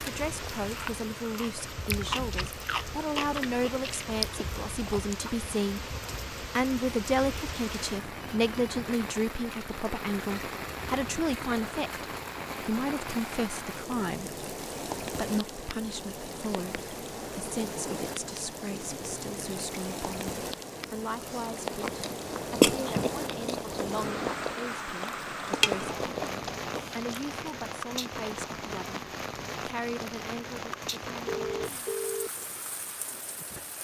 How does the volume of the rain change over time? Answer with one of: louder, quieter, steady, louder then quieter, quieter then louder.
steady.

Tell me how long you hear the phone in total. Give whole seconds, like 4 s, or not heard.
2 s.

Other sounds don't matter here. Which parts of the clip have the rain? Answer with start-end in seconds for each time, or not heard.
0.0-33.8.